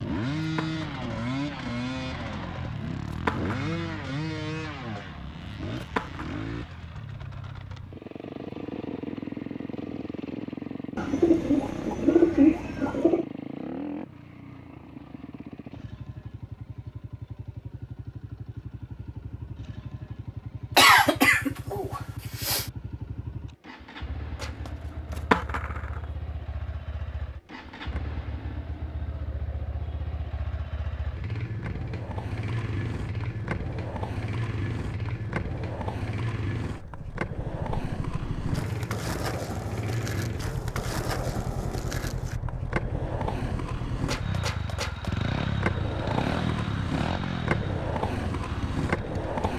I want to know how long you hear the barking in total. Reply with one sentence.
You can't hear the barking here.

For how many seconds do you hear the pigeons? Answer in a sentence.
The pigeons can be heard for 2 seconds in total.